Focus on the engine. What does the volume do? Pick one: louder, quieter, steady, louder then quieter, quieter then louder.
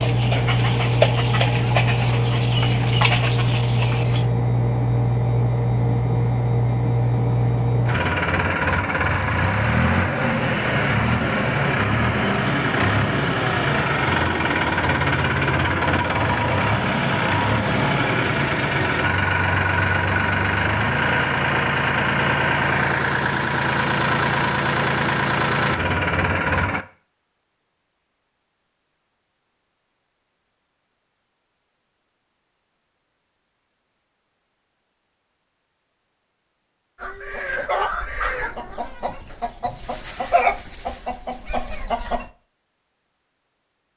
steady.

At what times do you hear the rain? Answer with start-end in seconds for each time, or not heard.
not heard.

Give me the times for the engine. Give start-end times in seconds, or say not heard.
0.0-26.9.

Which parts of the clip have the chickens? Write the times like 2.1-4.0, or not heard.
0.0-4.2, 37.0-42.3.